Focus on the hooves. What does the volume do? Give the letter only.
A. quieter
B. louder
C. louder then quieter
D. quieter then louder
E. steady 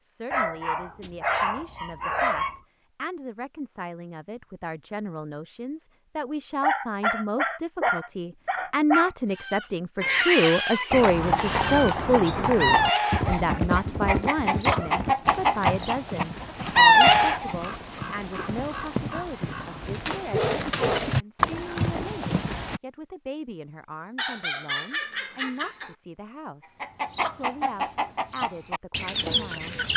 D.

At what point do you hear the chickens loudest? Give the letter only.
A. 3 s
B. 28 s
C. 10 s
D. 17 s
D.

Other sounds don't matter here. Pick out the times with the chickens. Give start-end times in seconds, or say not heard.
9.3-17.6, 26.8-29.9.